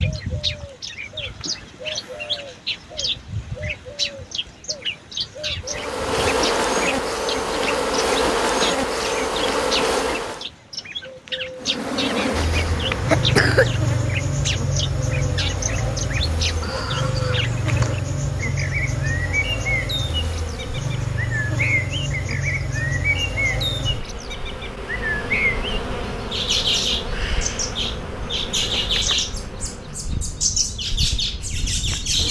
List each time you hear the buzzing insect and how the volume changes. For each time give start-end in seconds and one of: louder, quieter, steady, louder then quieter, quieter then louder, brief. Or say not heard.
5.6-10.4 steady
11.6-32.2 quieter.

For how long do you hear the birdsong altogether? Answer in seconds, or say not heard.
32 s.